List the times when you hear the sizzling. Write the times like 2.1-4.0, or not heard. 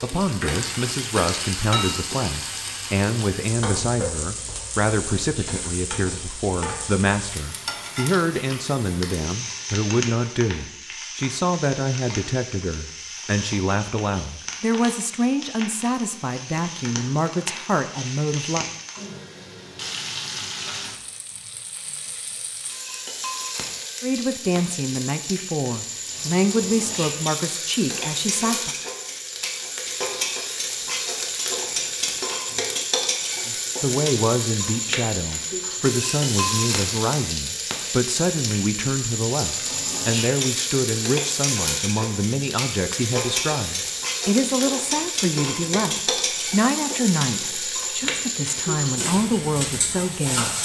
0.0-50.6.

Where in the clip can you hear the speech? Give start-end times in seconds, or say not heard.
0.0-18.6, 24.0-28.8, 33.5-50.6.